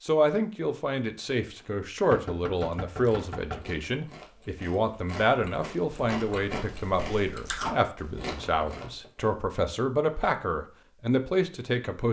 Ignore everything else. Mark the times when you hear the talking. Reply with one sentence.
You can hear the talking from 0.0 to 12.0 s.